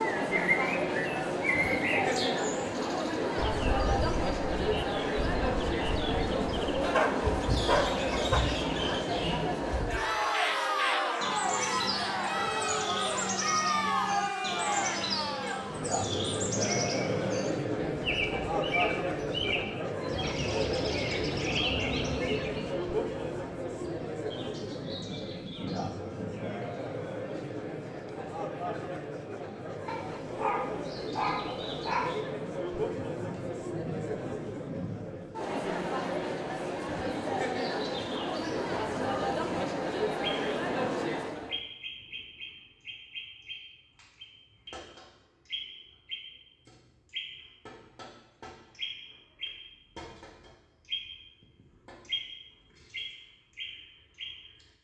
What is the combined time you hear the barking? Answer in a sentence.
You can hear the barking for 4 seconds altogether.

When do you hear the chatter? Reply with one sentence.
The chatter can be heard from 0.0 to 41.6 s.